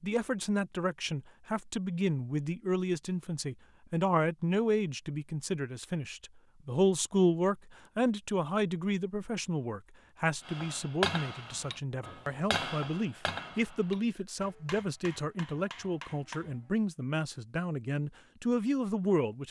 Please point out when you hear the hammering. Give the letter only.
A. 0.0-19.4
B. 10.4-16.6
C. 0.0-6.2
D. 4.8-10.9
B.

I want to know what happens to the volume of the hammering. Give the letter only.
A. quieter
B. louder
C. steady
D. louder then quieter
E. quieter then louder
A.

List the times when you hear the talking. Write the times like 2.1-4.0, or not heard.
0.0-19.4.